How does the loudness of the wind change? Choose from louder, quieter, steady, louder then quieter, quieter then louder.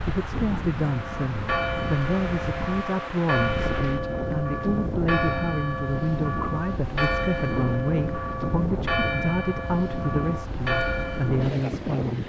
steady.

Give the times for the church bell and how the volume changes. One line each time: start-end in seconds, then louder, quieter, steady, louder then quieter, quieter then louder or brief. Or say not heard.
0.8-11.6 steady.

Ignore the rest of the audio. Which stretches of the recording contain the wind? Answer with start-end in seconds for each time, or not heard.
0.0-12.2.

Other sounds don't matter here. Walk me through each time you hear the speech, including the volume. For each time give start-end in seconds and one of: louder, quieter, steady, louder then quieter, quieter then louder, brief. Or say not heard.
0.1-12.2 steady.